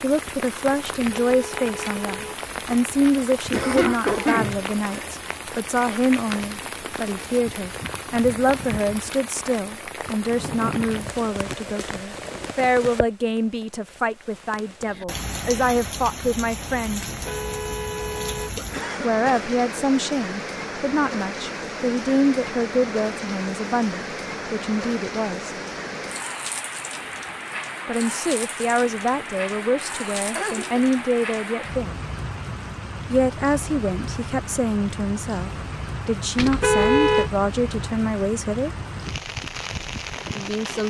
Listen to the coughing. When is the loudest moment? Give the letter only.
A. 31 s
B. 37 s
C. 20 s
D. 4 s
D.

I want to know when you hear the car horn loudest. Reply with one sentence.
The loudest moment of the car horn is at 37 seconds.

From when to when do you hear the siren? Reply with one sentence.
You can't hear the siren here.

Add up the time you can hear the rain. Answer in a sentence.
The rain can be heard for 41 seconds in total.